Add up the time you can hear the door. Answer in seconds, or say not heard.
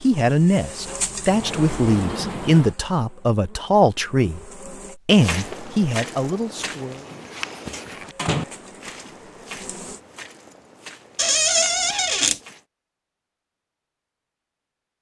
6 s.